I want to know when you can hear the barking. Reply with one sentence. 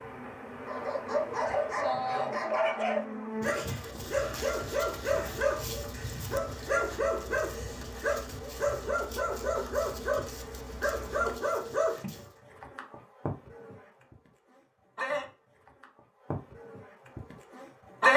The barking can be heard from 0.6 to 12.2 s.